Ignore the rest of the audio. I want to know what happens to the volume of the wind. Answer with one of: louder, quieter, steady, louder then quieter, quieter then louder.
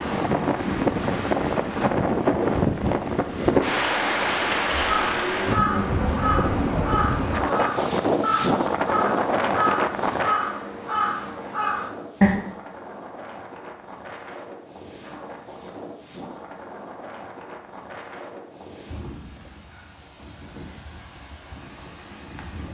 quieter.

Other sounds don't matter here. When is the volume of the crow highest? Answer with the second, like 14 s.
12 s.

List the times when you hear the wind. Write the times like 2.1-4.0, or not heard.
0.0-22.6.